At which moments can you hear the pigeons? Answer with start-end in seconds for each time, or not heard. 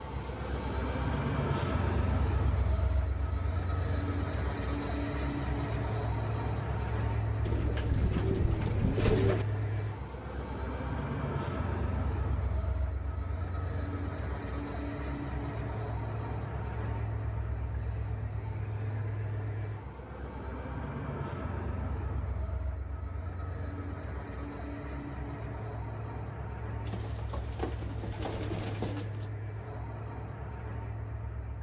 7.5-9.4, 26.9-29.3.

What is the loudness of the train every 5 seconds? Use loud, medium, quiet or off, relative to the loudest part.
loud, loud, loud, loud, medium, medium, medium.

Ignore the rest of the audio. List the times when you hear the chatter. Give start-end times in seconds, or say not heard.
not heard.